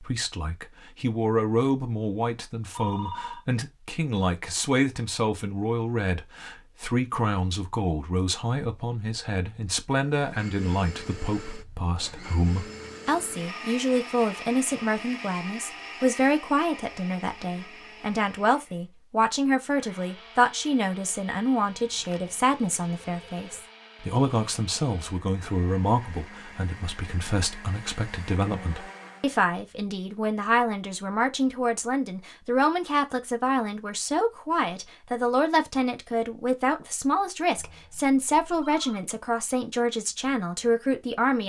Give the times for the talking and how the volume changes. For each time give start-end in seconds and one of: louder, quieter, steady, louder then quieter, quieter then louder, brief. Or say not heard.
0.0-41.4 steady.